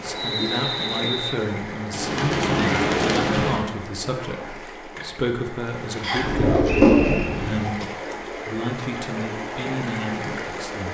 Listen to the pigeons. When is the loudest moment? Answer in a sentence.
The loudest moment of the pigeons is at 7 seconds.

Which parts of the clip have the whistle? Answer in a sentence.
The whistle can be heard from 0.1 to 1.4 s and from 6.0 to 7.2 s.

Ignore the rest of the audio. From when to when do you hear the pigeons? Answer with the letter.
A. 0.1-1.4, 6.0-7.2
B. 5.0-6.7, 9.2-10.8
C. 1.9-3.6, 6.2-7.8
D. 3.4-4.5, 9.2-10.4
C.